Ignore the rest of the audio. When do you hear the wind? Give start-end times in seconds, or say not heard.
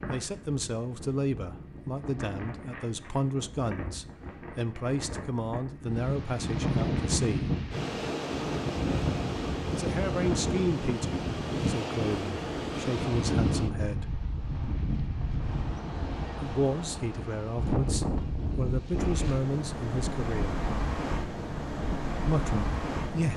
0.0-23.3.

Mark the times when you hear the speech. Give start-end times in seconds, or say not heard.
0.1-7.5, 9.7-14.1, 16.4-20.6, 22.1-23.3.